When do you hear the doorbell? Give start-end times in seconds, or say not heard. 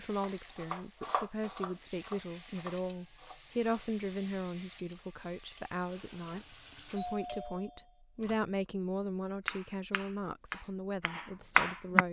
7.0-8.4.